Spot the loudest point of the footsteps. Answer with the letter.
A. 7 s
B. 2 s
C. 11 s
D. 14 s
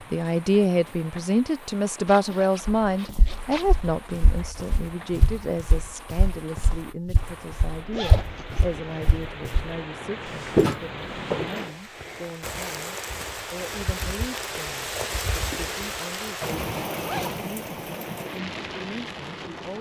C.